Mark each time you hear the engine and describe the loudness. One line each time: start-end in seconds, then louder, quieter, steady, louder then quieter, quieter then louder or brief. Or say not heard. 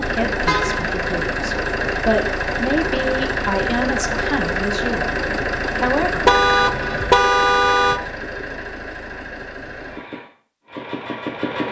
0.0-11.6 quieter.